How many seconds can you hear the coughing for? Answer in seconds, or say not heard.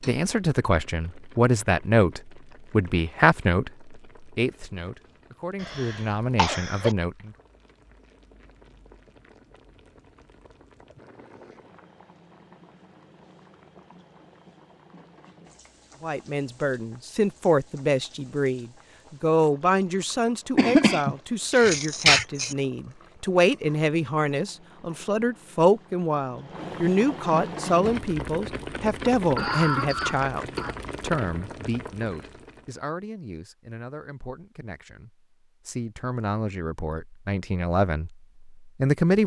5 s.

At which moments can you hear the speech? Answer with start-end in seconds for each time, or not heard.
0.1-7.3, 16.0-39.2.